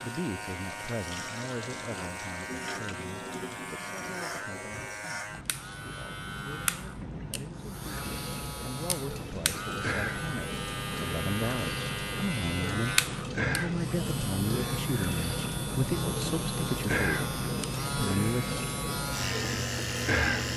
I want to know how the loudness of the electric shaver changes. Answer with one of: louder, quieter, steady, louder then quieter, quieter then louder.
louder.